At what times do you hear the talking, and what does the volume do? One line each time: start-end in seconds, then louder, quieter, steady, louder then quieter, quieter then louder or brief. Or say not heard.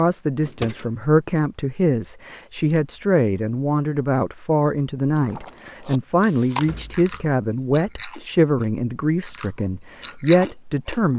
0.0-11.1 steady.